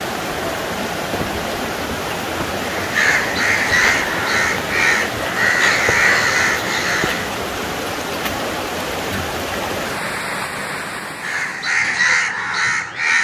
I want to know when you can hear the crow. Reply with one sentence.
You can hear the crow from 2.6 to 7.3 s and from 11.2 to 13.1 s.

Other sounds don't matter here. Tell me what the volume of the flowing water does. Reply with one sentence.
The volume of the flowing water stays about the same.